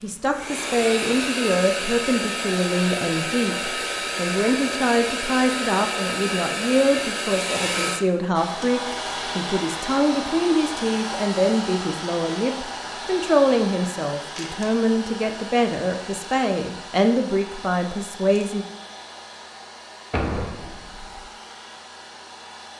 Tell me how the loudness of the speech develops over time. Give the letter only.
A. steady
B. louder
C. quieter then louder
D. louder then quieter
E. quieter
A.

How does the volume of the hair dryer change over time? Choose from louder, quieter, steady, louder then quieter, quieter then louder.
quieter.